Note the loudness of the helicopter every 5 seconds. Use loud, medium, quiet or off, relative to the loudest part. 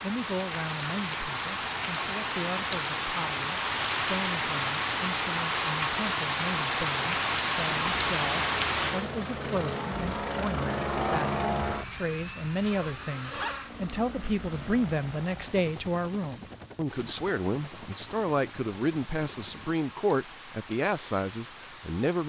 off, loud, loud, quiet, off.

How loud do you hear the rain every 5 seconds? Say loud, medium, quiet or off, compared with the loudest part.
loud, loud, quiet, quiet, quiet.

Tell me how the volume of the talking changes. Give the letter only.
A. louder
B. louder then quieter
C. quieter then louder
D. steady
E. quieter
A.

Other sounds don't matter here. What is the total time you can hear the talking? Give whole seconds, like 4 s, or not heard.
22 s.